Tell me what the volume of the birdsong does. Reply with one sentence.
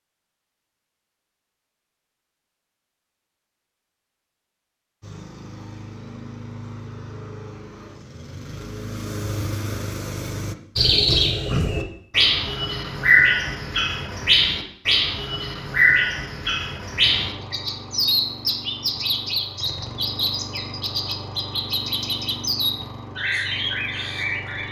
The volume of the birdsong goes down.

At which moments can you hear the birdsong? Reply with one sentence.
You can hear the birdsong from 10.8 to 24.6 s.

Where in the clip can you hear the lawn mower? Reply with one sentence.
The lawn mower can be heard from 5.0 to 10.6 s and from 17.0 to 24.6 s.